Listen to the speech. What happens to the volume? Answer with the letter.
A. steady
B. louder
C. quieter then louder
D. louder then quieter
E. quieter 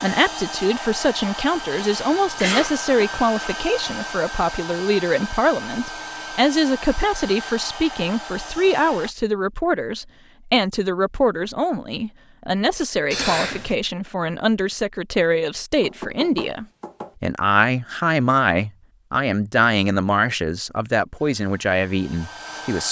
A.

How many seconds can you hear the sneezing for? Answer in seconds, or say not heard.
2 s.